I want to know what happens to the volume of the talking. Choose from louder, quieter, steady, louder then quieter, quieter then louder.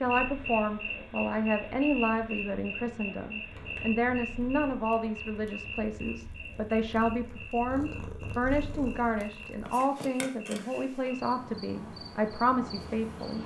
steady.